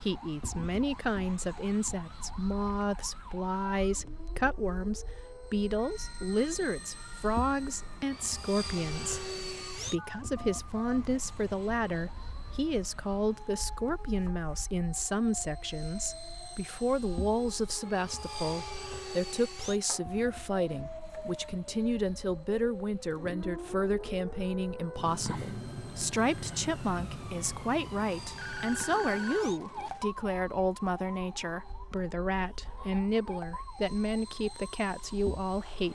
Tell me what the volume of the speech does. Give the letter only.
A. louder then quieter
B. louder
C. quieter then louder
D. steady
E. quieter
D.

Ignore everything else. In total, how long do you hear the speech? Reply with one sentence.
The speech can be heard for 36 seconds in total.